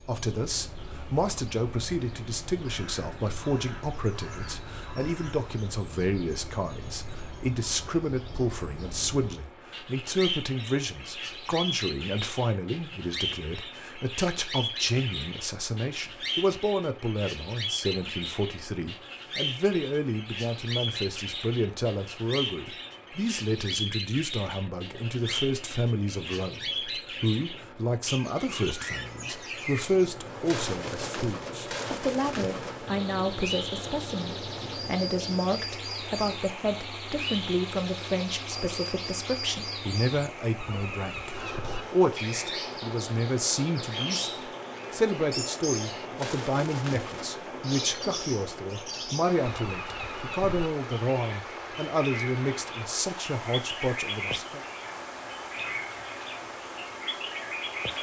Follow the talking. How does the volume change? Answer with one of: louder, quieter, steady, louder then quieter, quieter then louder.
steady.